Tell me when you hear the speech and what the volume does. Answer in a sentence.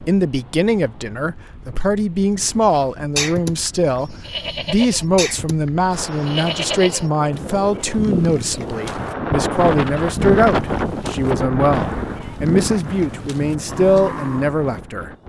You can hear the speech from 0.1 to 15.1 s, at a steady volume.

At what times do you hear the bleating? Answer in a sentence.
The bleating can be heard from 2.5 to 14.6 s.